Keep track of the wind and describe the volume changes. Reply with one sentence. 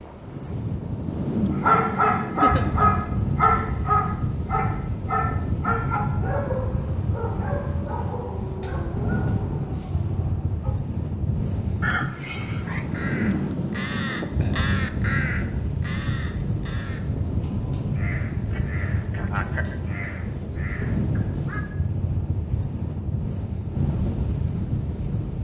The volume of the wind stays about the same.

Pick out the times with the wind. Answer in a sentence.
The wind can be heard from 0.0 to 25.3 s.